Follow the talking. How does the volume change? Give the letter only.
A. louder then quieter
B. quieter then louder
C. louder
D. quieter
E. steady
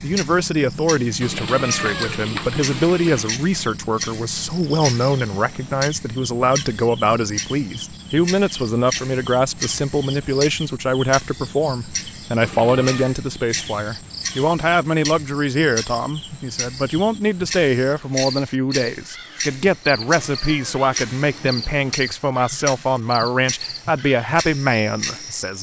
E.